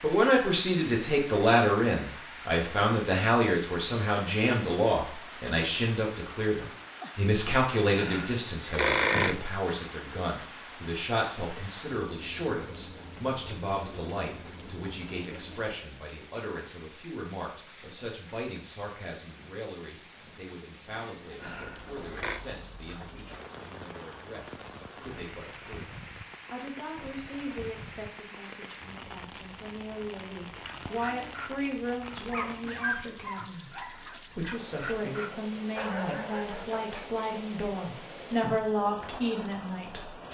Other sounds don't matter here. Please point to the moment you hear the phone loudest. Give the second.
9 s.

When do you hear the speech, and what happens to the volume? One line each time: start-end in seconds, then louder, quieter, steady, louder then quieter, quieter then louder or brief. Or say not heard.
0.0-40.2 quieter then louder.